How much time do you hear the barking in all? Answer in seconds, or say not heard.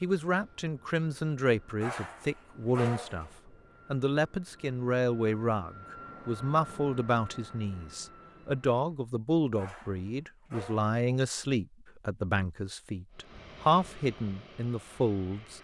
3 s.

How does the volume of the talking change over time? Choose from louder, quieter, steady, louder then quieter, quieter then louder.
steady.